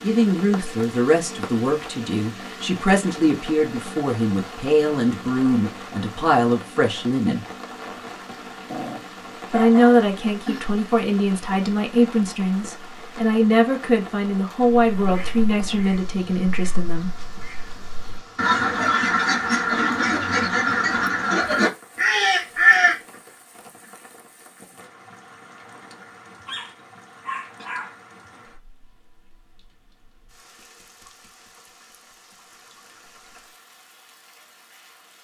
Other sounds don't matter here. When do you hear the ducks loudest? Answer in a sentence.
The volume of the ducks peaks at 23 seconds.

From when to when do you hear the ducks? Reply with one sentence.
You can hear the ducks from 14.9 to 23.0 s.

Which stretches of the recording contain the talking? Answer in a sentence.
The talking can be heard from 0.0 to 7.5 s and from 9.5 to 17.1 s.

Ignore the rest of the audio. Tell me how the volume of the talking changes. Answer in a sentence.
The loudness of the talking stays about the same.